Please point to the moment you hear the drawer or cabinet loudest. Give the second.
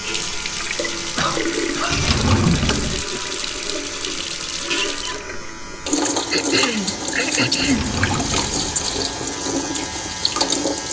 2 s.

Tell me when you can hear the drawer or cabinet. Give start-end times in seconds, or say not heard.
1.9-3.0, 7.6-9.2.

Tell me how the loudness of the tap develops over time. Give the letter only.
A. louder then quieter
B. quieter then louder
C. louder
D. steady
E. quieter
D.